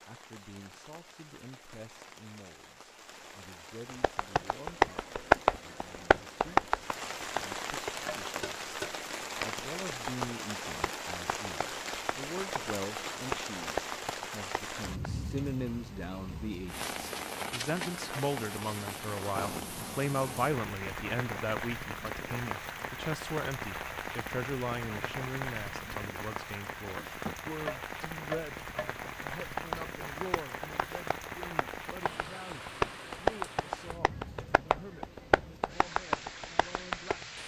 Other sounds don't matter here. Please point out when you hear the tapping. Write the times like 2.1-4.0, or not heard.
3.9-14.9, 26.9-37.2.